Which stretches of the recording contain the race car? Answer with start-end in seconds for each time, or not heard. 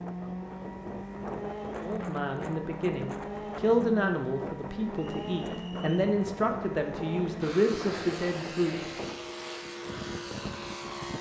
0.0-11.1.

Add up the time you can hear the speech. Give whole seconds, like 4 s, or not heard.
7 s.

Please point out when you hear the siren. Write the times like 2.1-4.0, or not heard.
not heard.